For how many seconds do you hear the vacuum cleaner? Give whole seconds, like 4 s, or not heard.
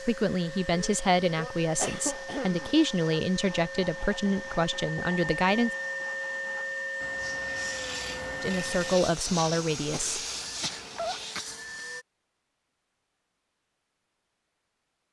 12 s.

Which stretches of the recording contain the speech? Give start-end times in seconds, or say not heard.
0.0-5.7, 8.4-10.2.